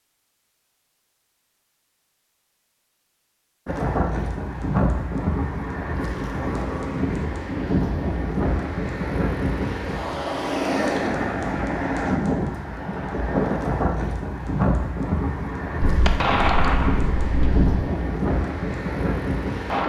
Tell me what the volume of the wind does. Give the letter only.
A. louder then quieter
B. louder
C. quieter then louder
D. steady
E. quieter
D.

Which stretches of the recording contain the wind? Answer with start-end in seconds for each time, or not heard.
3.6-19.8.